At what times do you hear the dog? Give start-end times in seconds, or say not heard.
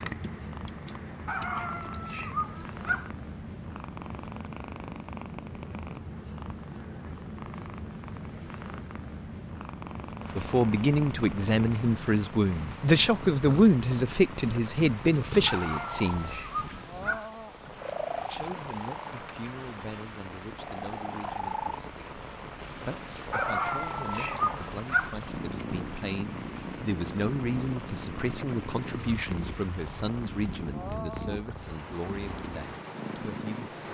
1.2-3.1, 15.4-17.3, 23.3-25.1.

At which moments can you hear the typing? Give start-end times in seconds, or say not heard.
0.0-2.0.